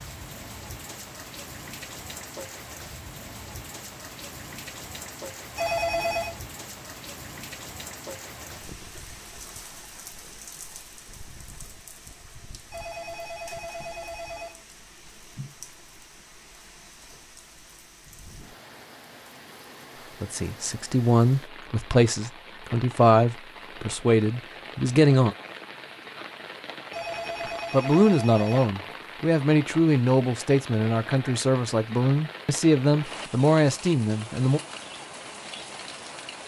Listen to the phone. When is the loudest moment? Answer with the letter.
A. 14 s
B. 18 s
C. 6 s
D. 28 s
C.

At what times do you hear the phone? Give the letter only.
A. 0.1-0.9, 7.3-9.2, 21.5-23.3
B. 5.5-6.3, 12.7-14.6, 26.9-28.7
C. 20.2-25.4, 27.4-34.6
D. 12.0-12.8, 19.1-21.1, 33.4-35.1
B.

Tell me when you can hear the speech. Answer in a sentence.
You can hear the speech from 20.2 to 25.4 s and from 27.4 to 34.6 s.